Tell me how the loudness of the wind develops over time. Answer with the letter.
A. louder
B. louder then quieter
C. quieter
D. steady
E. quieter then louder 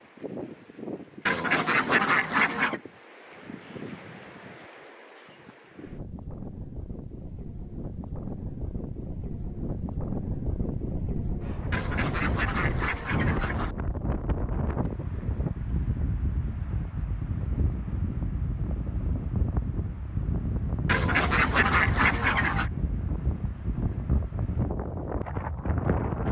A.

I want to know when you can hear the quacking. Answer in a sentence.
You can hear the quacking from 1.2 to 2.8 s, from 11.7 to 13.8 s and from 20.9 to 22.7 s.